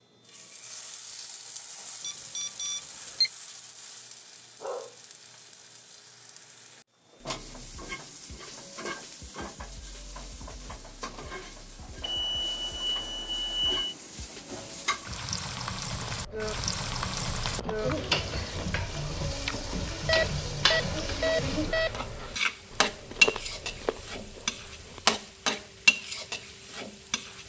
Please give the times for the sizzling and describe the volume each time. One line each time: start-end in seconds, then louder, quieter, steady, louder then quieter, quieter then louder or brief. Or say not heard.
0.1-27.4 louder.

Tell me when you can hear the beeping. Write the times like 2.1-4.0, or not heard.
2.0-3.3, 12.0-13.9, 20.1-22.1.